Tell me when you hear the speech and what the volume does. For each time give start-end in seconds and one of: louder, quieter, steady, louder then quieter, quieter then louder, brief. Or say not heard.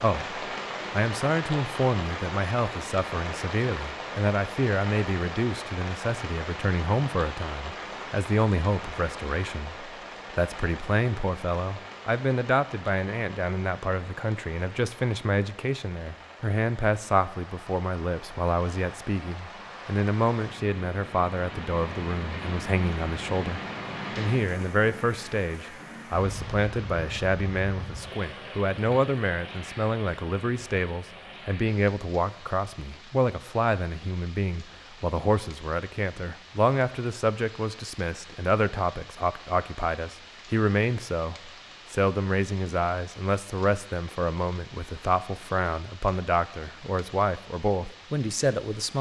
0.0-48.9 steady.